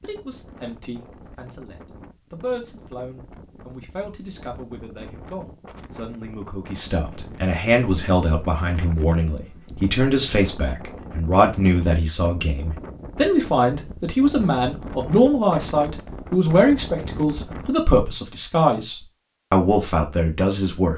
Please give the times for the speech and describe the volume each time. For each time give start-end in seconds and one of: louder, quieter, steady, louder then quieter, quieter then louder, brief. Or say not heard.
0.0-20.9 louder.